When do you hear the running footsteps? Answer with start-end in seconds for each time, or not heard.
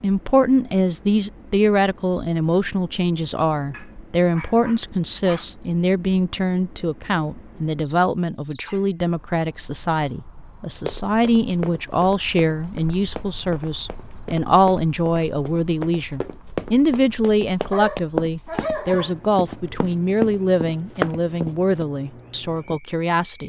10.8-21.9.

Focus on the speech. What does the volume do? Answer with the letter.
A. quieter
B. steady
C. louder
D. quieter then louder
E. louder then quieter
B.